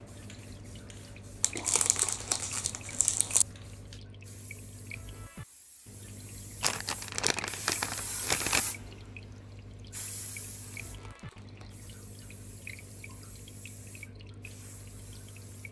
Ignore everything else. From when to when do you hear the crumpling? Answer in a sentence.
The crumpling can be heard from 1.4 to 3.5 s, from 6.6 to 8.6 s and from 10.7 to 11.9 s.